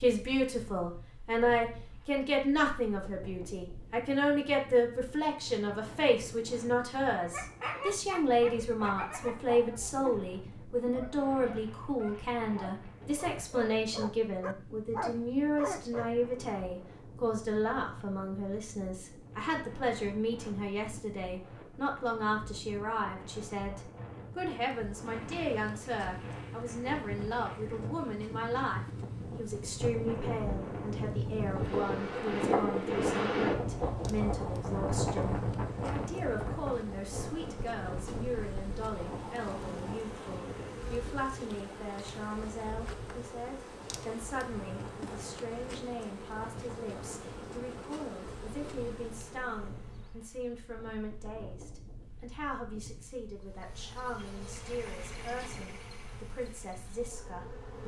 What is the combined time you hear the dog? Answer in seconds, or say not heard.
9 s.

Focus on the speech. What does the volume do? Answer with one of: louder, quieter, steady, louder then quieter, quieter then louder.
quieter.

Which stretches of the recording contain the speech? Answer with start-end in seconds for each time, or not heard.
0.0-57.8.